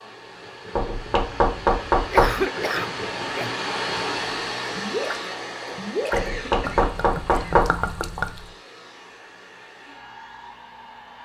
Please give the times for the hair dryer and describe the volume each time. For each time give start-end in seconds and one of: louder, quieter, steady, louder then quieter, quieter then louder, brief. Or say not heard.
0.0-11.2 louder then quieter.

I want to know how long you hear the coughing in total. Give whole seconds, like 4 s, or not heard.
3 s.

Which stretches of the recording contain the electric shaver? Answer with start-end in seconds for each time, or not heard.
not heard.